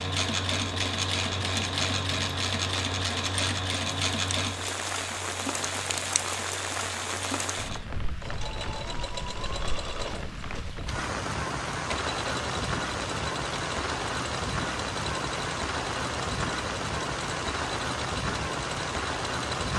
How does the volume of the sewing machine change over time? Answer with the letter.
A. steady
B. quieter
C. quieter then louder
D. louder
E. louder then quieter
B.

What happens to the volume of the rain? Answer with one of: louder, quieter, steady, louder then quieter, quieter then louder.
louder.